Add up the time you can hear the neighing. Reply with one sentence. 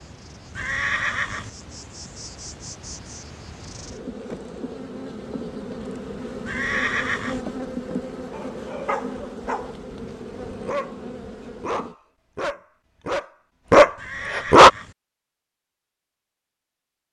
The neighing can be heard for 3 seconds in total.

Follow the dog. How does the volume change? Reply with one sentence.
The volume of the dog goes up.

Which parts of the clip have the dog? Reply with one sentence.
The dog can be heard from 8.3 to 14.7 s.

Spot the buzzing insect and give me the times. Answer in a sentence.
You can hear the buzzing insect from 0.0 to 11.9 s.